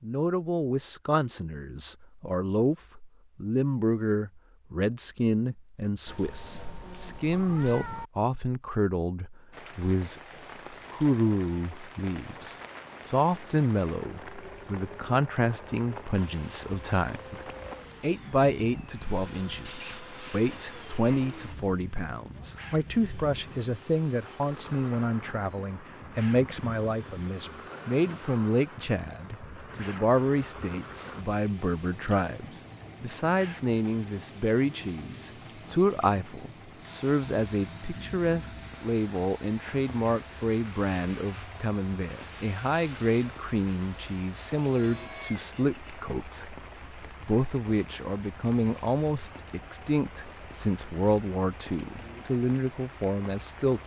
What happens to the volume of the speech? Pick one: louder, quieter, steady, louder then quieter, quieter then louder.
steady.